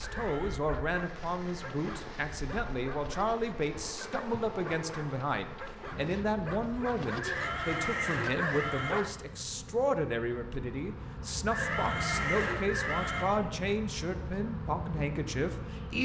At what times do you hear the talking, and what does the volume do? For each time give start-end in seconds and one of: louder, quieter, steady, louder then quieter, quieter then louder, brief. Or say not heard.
0.0-15.9 steady.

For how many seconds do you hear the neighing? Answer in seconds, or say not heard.
4 s.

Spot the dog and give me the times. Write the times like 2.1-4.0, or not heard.
0.0-9.2.